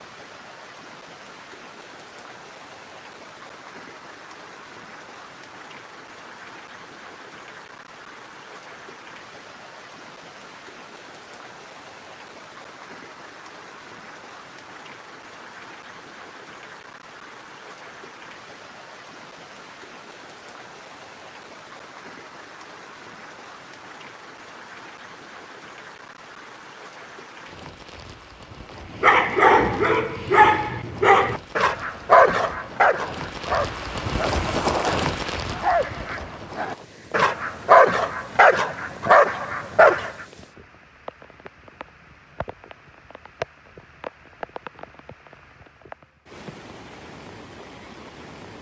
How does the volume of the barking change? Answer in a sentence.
The volume of the barking goes down, then up.